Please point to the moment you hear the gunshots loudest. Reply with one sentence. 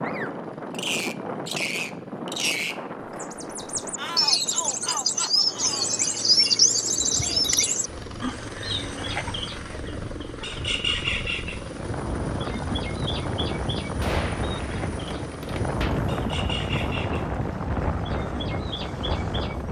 The volume of the gunshots peaks at 14 seconds.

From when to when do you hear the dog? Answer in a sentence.
You can't hear the dog here.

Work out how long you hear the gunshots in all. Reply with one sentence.
You can hear the gunshots for 2 seconds altogether.